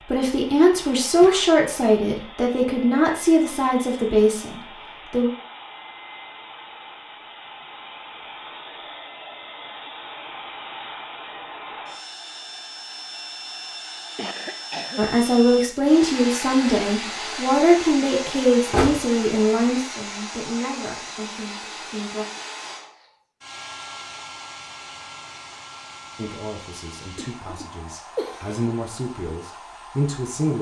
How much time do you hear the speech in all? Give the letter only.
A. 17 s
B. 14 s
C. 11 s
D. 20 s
A.